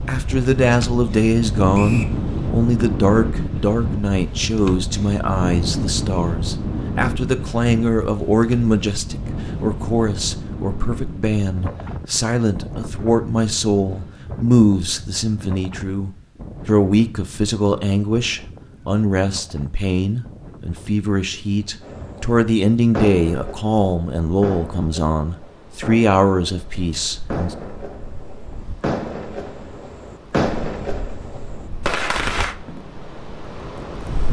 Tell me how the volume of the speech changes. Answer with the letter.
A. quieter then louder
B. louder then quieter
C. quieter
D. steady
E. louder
D.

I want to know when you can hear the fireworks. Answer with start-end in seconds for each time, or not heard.
21.8-32.5.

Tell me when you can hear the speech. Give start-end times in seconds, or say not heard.
0.0-27.6.